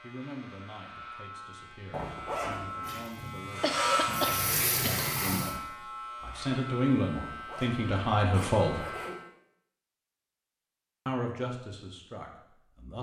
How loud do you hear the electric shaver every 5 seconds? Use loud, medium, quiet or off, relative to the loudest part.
loud, medium, off.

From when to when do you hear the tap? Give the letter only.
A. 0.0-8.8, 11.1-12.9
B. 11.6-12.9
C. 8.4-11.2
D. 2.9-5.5
D.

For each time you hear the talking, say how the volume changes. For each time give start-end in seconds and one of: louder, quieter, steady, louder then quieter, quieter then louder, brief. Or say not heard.
0.0-8.8 louder
11.1-12.9 brief.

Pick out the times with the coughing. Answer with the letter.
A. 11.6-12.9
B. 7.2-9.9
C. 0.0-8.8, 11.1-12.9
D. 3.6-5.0
D.